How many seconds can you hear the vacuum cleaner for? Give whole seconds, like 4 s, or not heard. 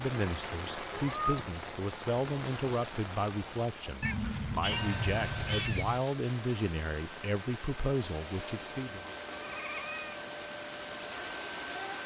7 s.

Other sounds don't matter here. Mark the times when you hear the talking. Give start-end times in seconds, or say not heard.
0.0-9.1.